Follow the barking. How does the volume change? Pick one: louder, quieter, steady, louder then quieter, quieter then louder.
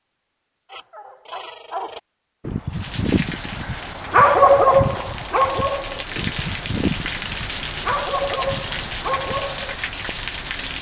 louder then quieter.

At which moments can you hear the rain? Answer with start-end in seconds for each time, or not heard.
2.7-10.7.